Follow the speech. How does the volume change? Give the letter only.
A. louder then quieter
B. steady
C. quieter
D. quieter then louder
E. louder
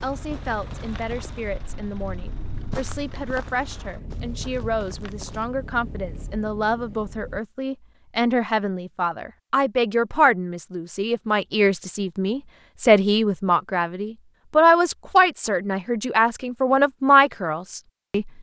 E.